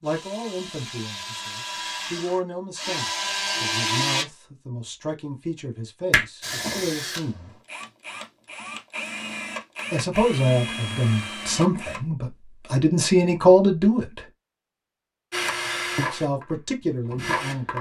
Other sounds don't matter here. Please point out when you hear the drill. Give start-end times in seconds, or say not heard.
0.0-4.2, 6.4-12.1, 15.3-17.7.